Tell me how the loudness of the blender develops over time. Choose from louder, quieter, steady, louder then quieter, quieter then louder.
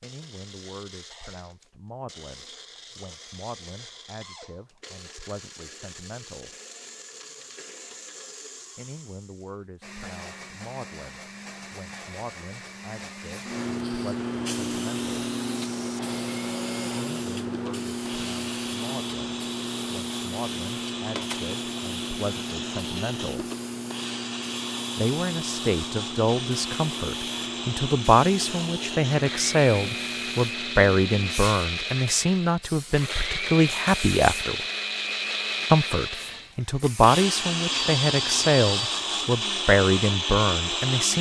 louder.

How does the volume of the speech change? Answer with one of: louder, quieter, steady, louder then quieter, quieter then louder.
louder.